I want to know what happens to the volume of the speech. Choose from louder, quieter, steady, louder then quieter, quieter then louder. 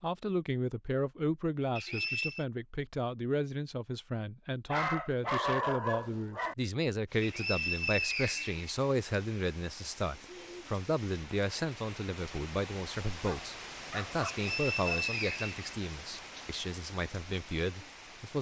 steady.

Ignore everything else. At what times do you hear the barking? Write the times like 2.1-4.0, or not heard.
4.7-6.5, 13.2-15.1.